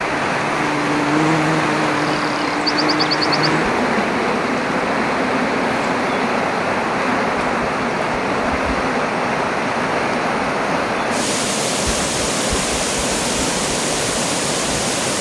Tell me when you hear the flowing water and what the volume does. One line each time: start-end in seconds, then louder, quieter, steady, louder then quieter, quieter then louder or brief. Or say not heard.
0.0-15.1 steady.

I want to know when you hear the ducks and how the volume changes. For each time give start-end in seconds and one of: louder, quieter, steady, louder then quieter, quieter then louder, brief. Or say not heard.
not heard.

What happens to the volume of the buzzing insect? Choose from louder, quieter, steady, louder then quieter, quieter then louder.
quieter.